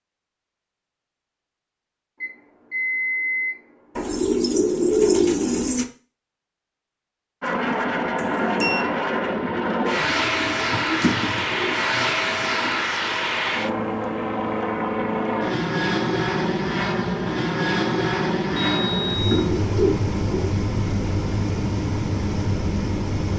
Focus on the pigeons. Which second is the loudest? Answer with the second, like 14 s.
5 s.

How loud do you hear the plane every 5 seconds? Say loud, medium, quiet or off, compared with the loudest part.
off, loud, loud, loud, loud.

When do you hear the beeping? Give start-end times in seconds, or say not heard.
2.2-4.1, 8.2-8.8, 18.6-19.6.